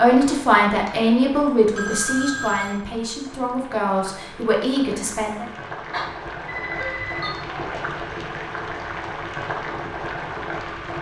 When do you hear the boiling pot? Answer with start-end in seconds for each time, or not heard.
0.0-10.9.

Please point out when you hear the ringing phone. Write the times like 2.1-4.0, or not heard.
1.8-2.8, 5.9-7.3.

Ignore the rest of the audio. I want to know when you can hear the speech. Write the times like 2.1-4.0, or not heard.
0.0-5.5.